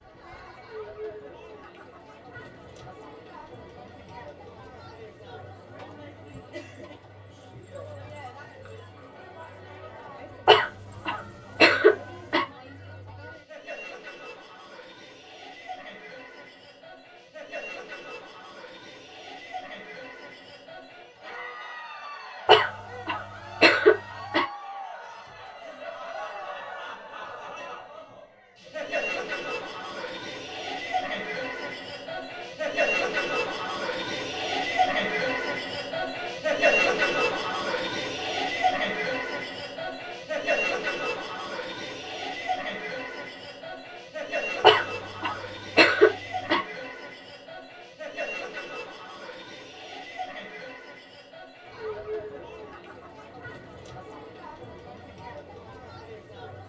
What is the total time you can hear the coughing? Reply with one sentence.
The coughing can be heard for 6 seconds in total.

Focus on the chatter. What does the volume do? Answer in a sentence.
The loudness of the chatter goes up, then down.